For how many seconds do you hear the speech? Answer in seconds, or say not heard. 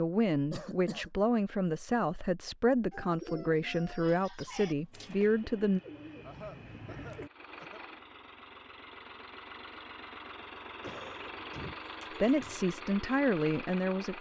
8 s.